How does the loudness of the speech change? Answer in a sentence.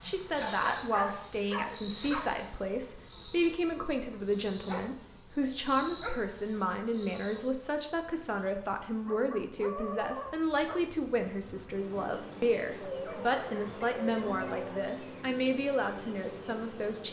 The volume of the speech stays about the same.